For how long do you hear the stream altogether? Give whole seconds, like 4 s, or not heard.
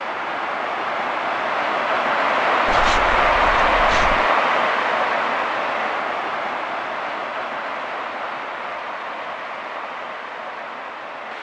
11 s.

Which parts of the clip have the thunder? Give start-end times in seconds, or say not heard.
not heard.